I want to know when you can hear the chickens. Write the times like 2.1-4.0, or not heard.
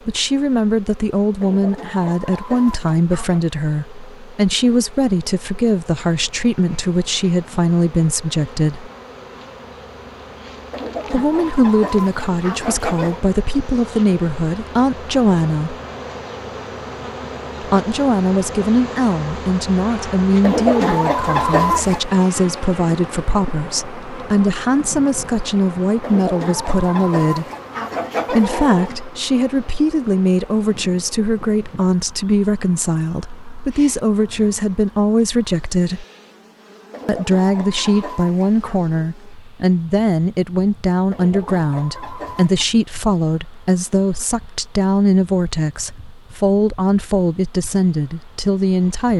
1.4-3.5, 10.7-13.2, 20.4-22.0, 26.0-29.0, 36.9-38.8, 41.1-42.6.